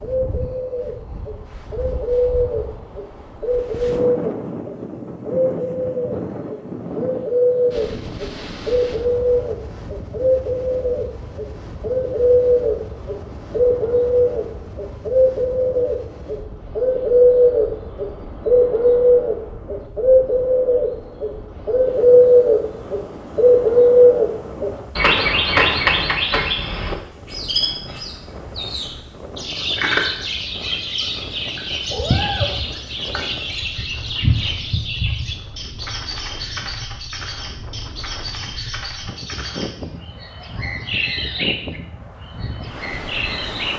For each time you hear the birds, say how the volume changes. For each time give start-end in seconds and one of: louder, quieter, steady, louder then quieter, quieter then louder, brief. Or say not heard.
0.0-43.7 louder then quieter.